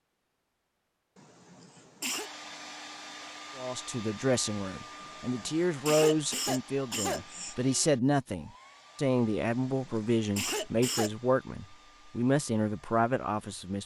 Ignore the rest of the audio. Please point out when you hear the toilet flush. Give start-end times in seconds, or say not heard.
not heard.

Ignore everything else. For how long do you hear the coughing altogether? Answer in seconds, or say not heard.
5 s.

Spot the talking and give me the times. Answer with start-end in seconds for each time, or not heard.
3.5-13.8.